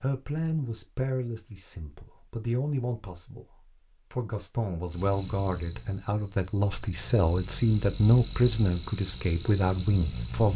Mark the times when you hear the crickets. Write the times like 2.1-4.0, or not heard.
4.9-10.5.